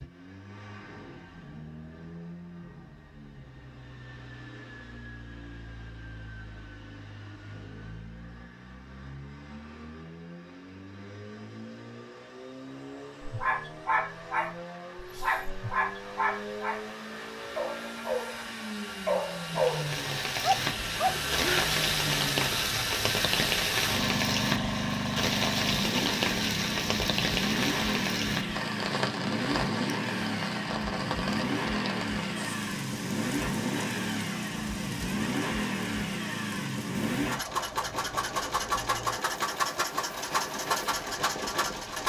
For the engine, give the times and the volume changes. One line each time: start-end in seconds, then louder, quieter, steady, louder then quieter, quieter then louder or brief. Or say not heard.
0.0-42.0 louder.